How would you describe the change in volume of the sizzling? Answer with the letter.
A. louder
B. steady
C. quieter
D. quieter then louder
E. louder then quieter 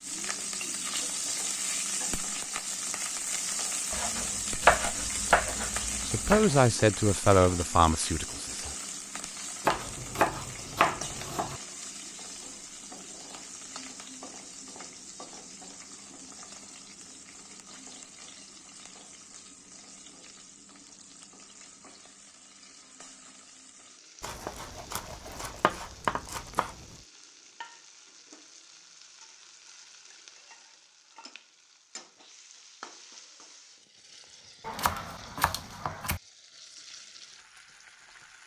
C.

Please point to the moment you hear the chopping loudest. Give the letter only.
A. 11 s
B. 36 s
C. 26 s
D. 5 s
D.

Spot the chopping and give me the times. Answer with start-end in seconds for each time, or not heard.
3.9-6.6, 9.7-11.6, 24.2-26.9, 34.6-36.2.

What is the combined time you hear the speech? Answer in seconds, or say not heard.
3 s.